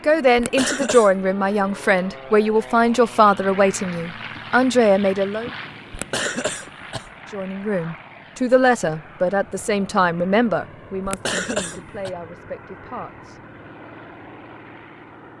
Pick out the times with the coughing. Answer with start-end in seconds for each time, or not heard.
0.3-1.1, 5.9-7.1, 11.1-12.1.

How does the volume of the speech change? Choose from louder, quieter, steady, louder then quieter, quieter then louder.
quieter.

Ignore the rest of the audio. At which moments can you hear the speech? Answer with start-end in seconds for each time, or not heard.
0.1-5.5, 7.3-13.4.